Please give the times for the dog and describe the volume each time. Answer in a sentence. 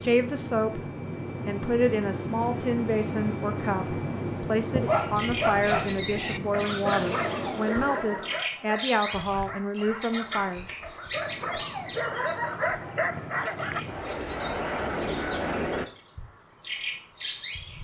You can hear the dog from 4.8 to 13.8 s, getting quieter then louder.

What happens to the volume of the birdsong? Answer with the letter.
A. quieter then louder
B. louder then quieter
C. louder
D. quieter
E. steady
A.